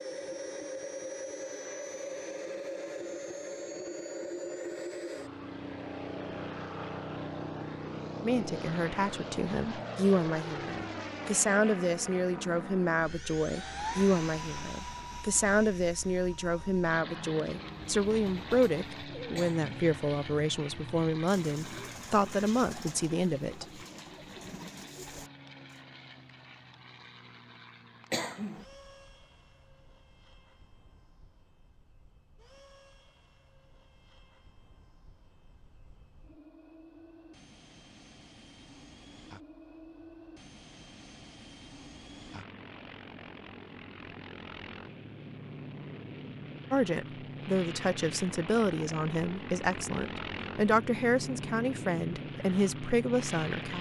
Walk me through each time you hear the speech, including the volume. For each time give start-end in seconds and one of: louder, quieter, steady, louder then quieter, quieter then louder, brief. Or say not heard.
8.2-23.6 steady
46.7-53.7 steady.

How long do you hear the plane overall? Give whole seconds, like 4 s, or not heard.
54 s.